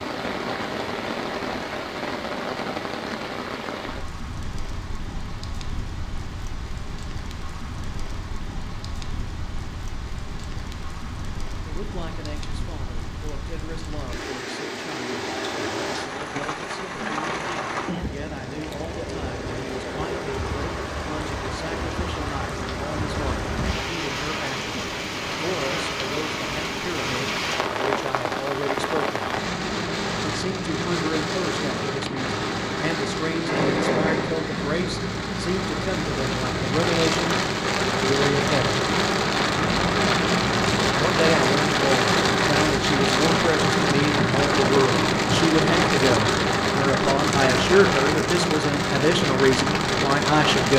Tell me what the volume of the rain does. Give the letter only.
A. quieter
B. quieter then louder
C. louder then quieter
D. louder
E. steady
D.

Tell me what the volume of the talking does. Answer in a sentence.
The loudness of the talking goes up.